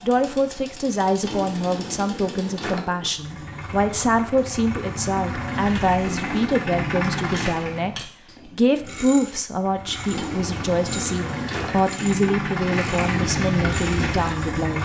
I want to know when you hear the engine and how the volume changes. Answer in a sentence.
You can hear the engine from 3.0 to 7.8 s, getting louder; and from 9.6 to 14.8 s, getting louder.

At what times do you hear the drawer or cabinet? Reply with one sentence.
The drawer or cabinet can be heard from 1.2 to 3.1 s, from 5.6 to 6.5 s and from 10.1 to 11.8 s.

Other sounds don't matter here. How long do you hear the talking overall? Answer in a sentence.
The talking can be heard for 15 seconds in total.